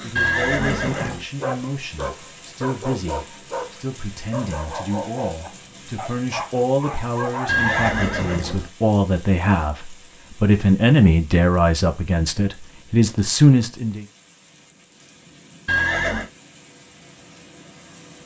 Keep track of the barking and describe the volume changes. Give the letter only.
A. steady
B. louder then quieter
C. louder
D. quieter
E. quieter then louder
A.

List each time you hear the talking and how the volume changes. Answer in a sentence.
The talking can be heard from 0.0 to 14.1 s, getting louder.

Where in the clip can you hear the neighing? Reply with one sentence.
The neighing can be heard from 0.1 to 1.2 s, from 7.5 to 8.7 s and from 15.7 to 16.3 s.